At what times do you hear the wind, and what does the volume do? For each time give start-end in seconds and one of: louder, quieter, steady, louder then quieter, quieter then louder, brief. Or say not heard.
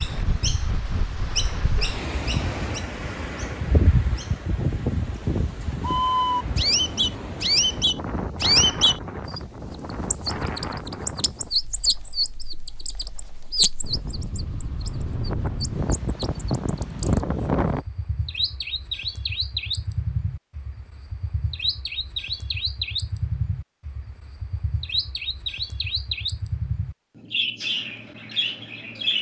0.0-17.9 quieter then louder.